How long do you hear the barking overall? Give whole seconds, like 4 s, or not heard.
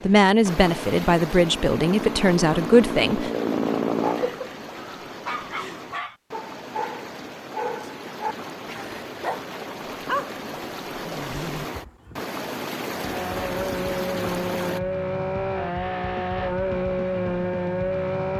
8 s.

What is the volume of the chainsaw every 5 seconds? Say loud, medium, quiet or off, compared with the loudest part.
loud, off, loud, loud.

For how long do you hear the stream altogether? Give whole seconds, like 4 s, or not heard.
15 s.